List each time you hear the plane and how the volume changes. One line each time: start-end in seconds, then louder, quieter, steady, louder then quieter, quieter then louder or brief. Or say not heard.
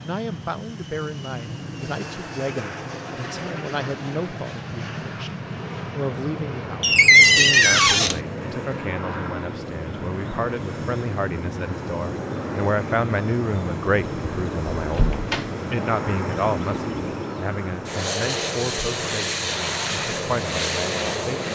0.0-21.5 louder.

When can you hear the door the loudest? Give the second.
7 s.